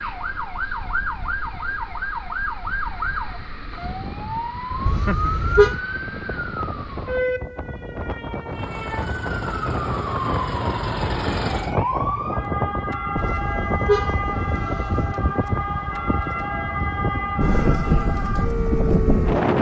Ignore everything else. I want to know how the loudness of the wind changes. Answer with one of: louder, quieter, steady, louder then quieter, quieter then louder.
louder.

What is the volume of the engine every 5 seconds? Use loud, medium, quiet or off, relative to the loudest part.
off, medium, loud, off.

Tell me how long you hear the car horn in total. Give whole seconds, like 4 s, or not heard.
3 s.